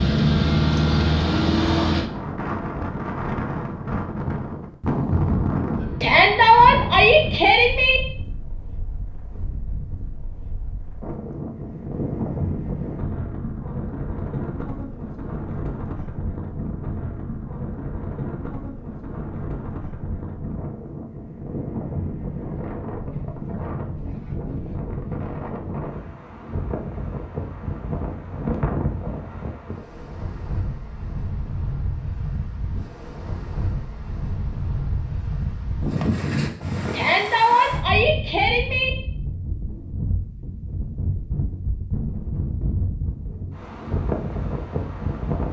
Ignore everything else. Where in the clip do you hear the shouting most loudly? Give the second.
7 s.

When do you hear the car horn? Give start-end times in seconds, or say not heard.
not heard.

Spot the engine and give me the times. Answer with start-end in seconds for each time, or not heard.
0.0-2.1.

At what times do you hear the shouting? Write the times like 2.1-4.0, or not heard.
6.0-8.0, 36.9-38.9.